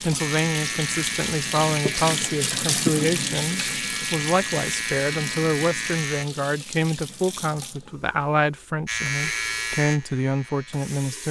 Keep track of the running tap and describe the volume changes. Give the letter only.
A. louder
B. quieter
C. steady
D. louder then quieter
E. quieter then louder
B.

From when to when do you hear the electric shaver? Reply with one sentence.
You can hear the electric shaver from 0.0 to 6.2 s and from 8.8 to 11.2 s.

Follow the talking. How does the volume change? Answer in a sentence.
The volume of the talking stays about the same.